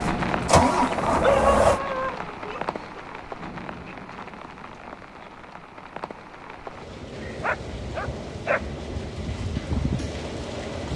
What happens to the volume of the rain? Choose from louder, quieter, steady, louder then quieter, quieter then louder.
quieter then louder.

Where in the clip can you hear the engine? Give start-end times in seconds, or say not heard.
0.0-1.8.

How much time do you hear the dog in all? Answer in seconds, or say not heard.
3 s.